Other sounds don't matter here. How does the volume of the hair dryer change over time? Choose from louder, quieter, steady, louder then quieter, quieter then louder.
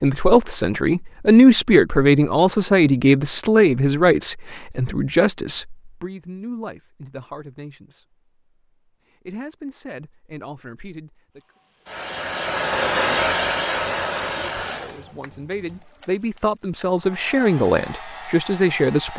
quieter then louder.